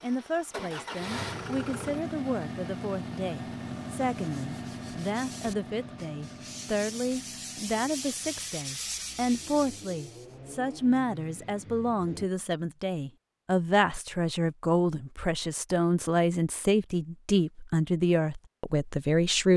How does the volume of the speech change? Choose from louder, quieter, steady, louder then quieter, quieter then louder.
louder.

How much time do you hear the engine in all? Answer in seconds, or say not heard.
12 s.